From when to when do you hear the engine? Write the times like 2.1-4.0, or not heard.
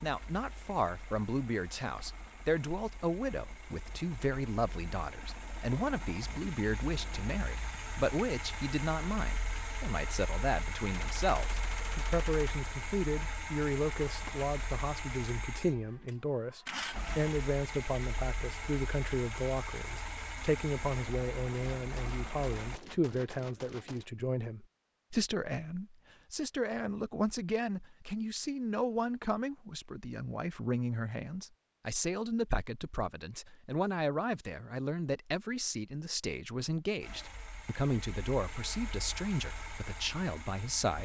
0.0-22.8, 37.0-40.9.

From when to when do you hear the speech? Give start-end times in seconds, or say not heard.
0.0-40.9.